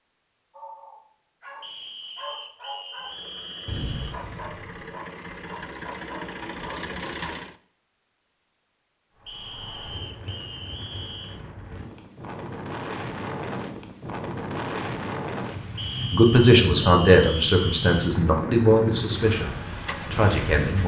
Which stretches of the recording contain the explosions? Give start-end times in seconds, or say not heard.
3.6-4.8.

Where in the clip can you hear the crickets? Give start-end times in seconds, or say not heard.
not heard.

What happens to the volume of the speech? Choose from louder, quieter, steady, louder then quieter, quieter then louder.
quieter.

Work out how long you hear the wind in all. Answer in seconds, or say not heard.
12 s.